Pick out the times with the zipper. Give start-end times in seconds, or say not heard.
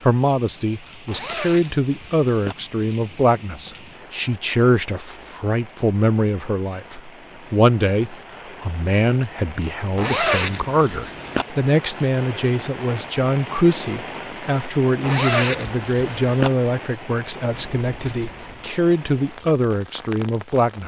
1.1-2.5, 9.9-11.4, 15.0-16.5.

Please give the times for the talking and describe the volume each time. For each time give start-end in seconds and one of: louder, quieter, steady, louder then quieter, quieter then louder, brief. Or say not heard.
0.0-20.8 steady.